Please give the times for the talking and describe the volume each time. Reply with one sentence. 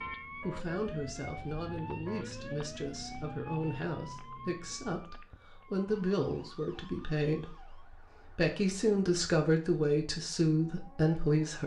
You can hear the talking from 0.0 to 11.6 s, getting louder.